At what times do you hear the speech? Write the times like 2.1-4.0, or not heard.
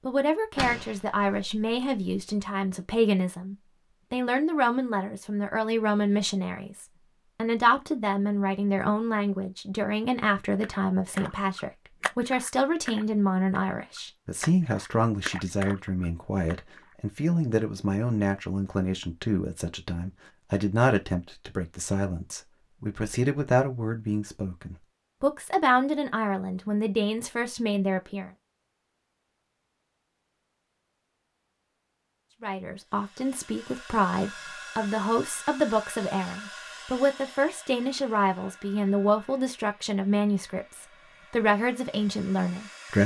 0.1-28.3, 32.4-43.0.